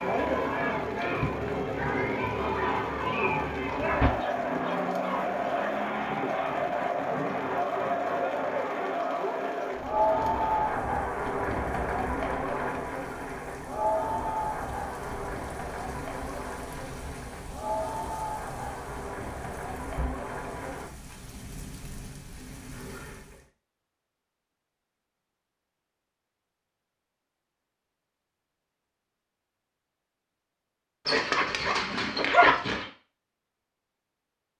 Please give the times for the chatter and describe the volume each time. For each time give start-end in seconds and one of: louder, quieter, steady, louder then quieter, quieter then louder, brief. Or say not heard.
0.0-20.9 quieter.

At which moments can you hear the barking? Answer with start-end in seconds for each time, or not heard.
3.8-5.7, 31.1-32.9.